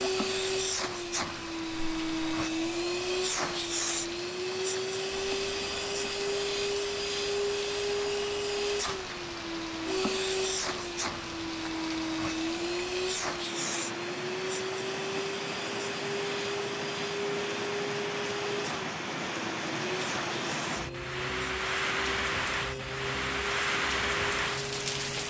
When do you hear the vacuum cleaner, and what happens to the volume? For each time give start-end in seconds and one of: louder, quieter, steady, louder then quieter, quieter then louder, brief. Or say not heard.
0.0-25.1 quieter.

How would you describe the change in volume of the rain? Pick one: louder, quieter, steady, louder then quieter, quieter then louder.
louder.